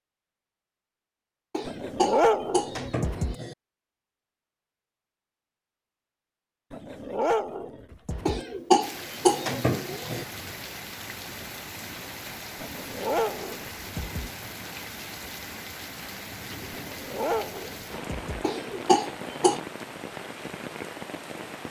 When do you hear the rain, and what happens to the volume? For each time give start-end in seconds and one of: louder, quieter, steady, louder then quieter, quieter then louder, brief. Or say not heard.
8.8-21.6 steady.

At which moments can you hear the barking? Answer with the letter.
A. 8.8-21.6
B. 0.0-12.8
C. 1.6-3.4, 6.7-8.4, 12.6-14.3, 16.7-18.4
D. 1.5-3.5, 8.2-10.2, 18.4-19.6
C.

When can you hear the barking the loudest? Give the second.
2 s.